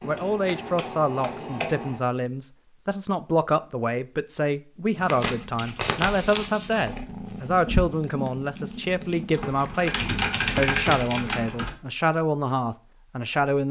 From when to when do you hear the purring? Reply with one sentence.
The purring can be heard from 5.0 to 11.5 s.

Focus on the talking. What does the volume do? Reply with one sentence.
The volume of the talking stays about the same.